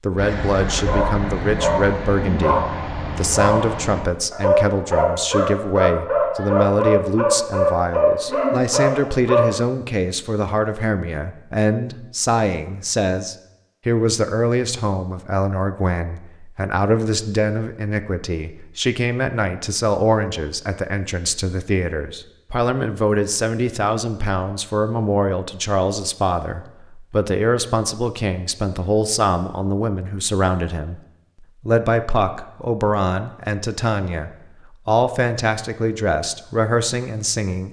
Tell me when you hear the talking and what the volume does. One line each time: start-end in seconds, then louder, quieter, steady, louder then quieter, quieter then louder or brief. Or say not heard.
0.0-37.6 steady.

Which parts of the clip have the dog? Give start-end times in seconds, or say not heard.
0.1-9.6.